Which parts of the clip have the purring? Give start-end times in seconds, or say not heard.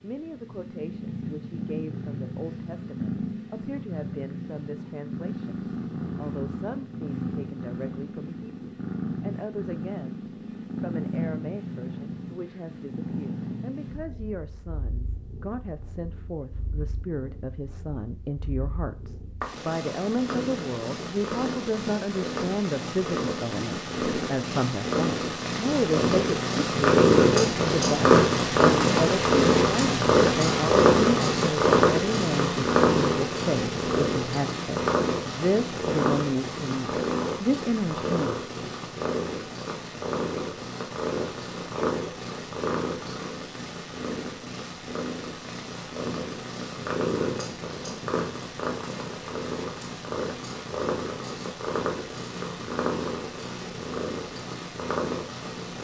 0.0-55.7.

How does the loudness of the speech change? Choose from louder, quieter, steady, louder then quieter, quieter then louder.
louder.